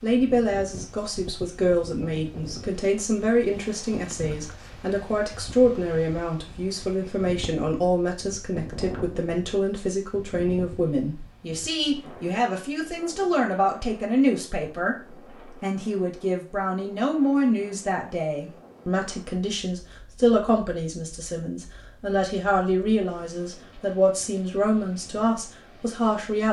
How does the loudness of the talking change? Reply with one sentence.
The volume of the talking stays about the same.